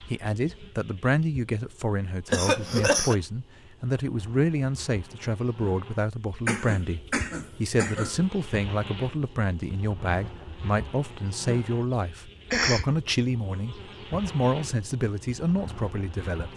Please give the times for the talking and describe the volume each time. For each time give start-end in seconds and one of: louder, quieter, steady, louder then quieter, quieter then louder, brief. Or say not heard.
0.0-16.5 steady.